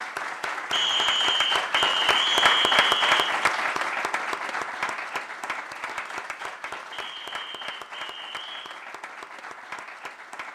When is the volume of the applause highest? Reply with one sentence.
The volume of the applause peaks at 3 seconds.